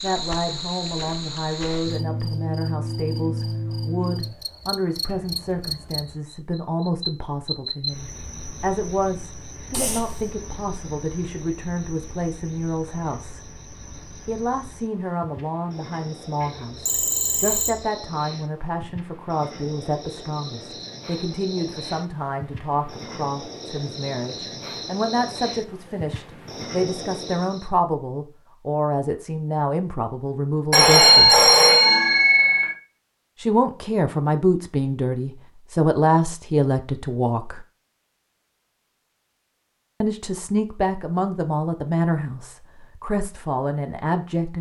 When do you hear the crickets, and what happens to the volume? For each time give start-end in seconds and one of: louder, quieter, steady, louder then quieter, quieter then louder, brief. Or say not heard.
0.0-27.7 quieter then louder.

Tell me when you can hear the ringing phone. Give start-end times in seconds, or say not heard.
9.7-10.2, 16.4-17.8, 30.7-32.8.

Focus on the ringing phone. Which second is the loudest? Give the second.
31 s.